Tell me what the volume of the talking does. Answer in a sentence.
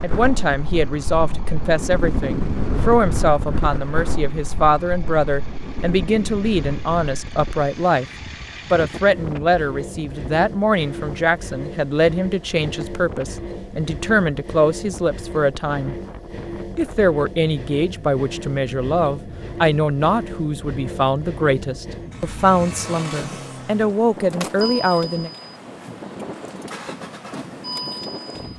The loudness of the talking stays about the same.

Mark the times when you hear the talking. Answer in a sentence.
You can hear the talking from 0.0 to 8.1 s, from 8.7 to 15.9 s and from 16.8 to 25.3 s.